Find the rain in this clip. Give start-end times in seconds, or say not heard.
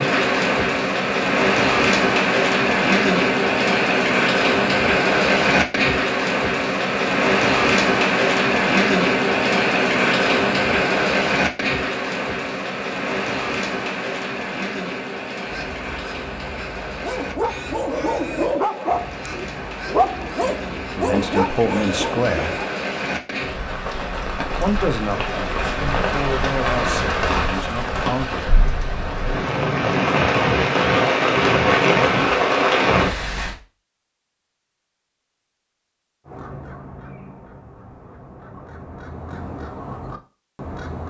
0.0-33.5.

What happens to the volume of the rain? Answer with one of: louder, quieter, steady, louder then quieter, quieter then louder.
quieter then louder.